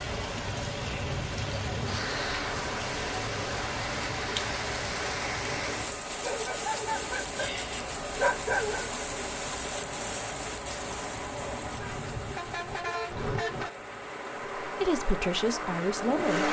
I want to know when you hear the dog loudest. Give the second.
8 s.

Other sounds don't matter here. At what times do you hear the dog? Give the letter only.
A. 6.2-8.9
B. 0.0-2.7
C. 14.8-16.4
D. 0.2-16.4
A.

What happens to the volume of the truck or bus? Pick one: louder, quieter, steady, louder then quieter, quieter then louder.
louder.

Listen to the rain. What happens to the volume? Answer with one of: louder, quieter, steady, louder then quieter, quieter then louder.
quieter.